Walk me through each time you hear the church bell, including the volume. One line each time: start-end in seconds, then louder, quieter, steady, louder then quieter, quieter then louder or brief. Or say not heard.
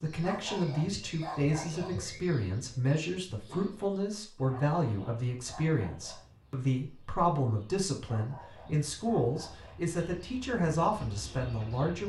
not heard.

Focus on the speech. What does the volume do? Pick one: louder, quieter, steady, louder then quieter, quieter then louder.
steady.